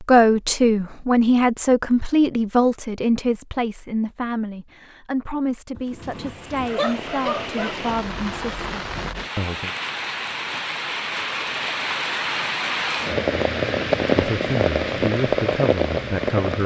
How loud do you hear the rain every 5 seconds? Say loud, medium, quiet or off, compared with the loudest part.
off, medium, loud, loud.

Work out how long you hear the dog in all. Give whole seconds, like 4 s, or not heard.
2 s.